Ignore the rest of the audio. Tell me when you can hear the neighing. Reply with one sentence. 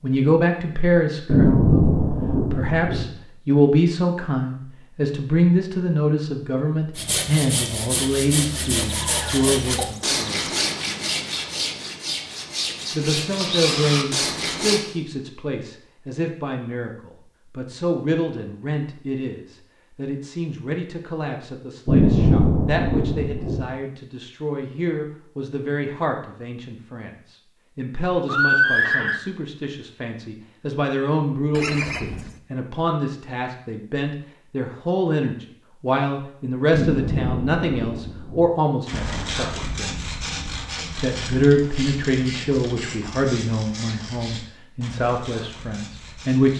You can hear the neighing from 8.7 to 10.7 s, from 28.2 to 29.2 s and from 31.6 to 32.4 s.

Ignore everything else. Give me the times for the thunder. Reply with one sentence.
The thunder can be heard from 1.2 to 3.0 s, from 21.9 to 23.6 s and from 36.7 to 38.5 s.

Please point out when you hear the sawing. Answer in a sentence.
You can hear the sawing from 7.0 to 14.8 s and from 38.9 to 46.5 s.